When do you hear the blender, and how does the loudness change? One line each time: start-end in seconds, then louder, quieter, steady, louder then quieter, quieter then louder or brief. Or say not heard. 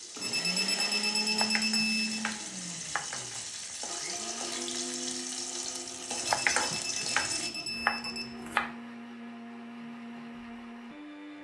0.0-11.4 quieter.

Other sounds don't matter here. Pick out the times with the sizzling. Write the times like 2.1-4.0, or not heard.
0.0-7.5.